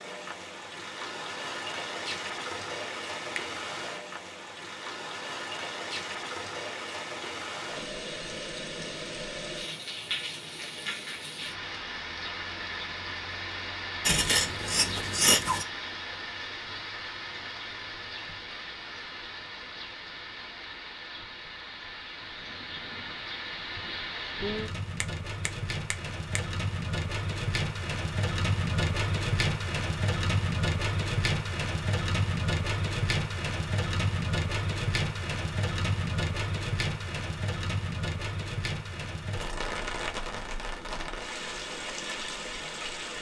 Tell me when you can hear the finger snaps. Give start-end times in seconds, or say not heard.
24.9-26.4.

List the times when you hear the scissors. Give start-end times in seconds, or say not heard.
14.1-15.7.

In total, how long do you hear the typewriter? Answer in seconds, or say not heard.
not heard.